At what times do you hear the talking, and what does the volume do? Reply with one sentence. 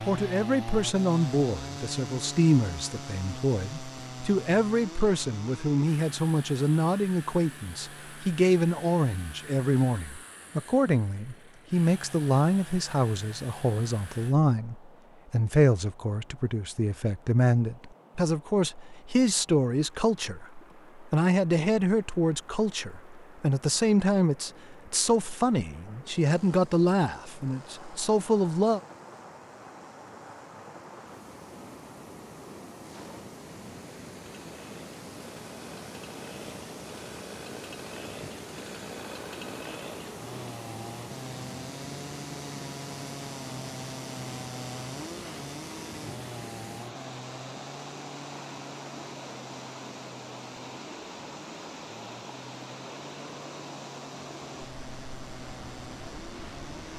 The talking can be heard from 0.1 to 28.8 s, at a steady volume.